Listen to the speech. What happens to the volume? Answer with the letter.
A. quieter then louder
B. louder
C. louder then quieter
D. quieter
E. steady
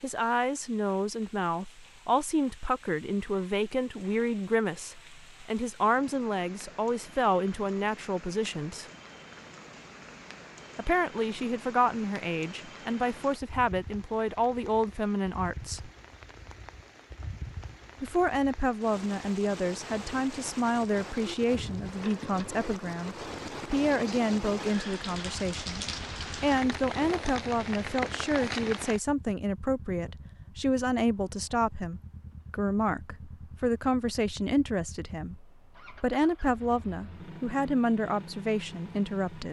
E.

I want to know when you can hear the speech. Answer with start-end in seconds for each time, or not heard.
0.0-8.8, 10.8-15.9, 18.0-39.4.